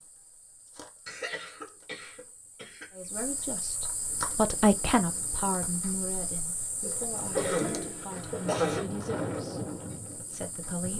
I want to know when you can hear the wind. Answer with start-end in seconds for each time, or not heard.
4.0-10.9.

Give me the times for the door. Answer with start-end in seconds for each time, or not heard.
not heard.